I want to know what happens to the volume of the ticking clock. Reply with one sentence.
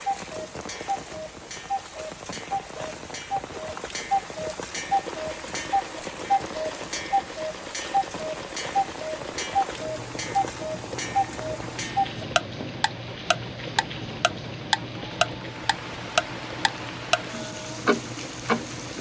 The volume of the ticking clock goes up.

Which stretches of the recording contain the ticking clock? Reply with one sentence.
You can hear the ticking clock from 0.0 to 18.9 s.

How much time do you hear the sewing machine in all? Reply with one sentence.
The sewing machine can be heard for 14 seconds in total.